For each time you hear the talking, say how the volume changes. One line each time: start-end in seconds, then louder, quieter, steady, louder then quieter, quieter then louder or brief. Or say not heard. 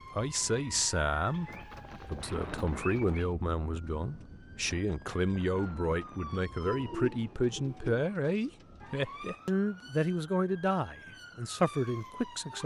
0.1-12.6 steady.